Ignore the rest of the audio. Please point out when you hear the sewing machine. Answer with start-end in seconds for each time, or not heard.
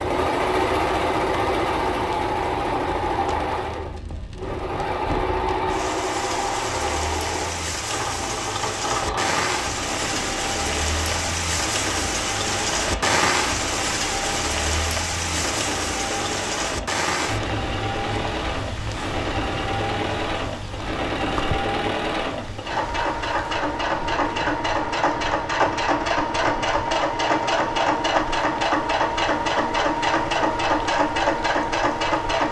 0.0-32.4.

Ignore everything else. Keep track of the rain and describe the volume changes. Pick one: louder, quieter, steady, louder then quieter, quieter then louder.
louder then quieter.